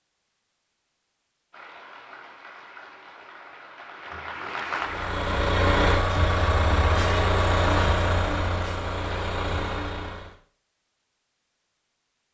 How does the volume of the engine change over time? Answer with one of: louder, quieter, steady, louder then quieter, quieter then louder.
quieter.